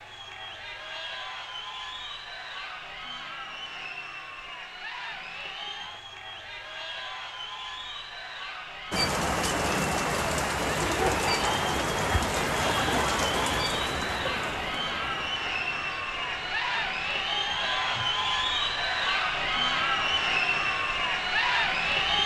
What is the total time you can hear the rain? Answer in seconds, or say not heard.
13 s.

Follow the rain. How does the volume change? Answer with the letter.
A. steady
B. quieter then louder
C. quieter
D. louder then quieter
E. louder
C.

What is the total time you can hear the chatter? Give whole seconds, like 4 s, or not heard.
22 s.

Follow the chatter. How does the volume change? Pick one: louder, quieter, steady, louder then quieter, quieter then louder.
louder.